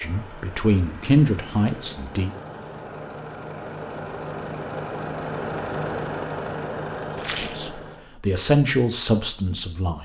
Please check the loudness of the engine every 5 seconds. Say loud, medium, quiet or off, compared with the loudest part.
medium, loud.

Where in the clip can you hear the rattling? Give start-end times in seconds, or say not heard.
7.2-7.7.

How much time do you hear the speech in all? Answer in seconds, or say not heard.
5 s.